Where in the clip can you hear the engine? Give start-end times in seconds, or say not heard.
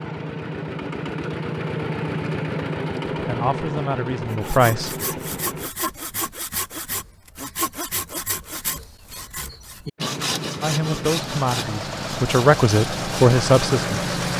0.0-5.7, 9.9-14.3.